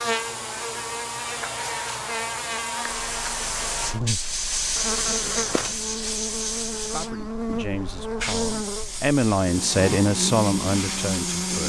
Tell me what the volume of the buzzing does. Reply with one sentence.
The volume of the buzzing stays about the same.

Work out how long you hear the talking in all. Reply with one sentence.
You can hear the talking for 5 seconds altogether.